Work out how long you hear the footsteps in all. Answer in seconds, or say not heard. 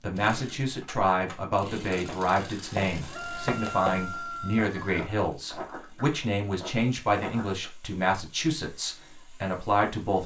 6 s.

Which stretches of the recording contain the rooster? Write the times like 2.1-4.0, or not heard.
3.0-5.0.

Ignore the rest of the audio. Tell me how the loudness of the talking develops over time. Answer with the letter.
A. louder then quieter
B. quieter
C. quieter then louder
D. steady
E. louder
D.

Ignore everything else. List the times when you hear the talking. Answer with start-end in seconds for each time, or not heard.
0.0-10.2.